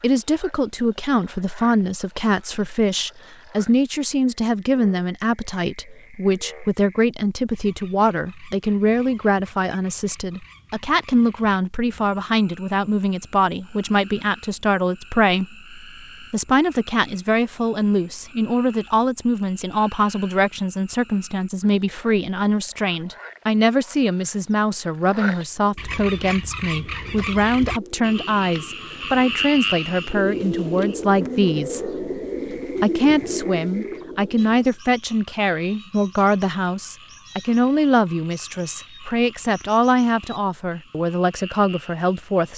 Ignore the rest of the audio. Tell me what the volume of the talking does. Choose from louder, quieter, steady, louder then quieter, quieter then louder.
steady.